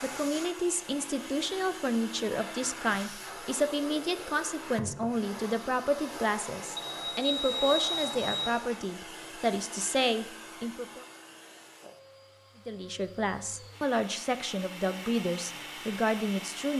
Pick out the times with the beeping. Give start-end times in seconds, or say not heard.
6.8-8.4.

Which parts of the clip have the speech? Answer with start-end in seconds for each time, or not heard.
0.0-11.1, 12.7-16.7.